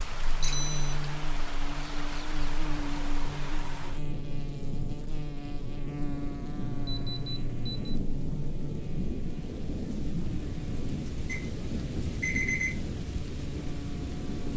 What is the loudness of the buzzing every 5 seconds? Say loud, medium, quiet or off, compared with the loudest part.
loud, loud, medium.